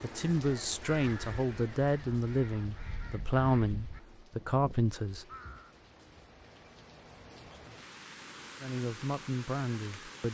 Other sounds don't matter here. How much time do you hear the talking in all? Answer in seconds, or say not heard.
7 s.